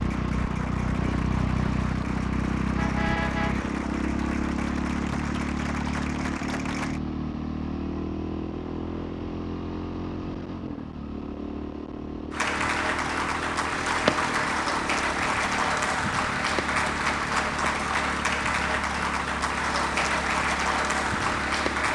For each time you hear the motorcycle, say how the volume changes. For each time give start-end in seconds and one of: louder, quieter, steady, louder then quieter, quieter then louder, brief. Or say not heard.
0.0-21.9 quieter.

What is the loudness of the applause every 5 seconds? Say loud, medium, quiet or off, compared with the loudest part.
quiet, medium, loud, loud, loud.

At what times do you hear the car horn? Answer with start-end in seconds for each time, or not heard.
2.8-3.7.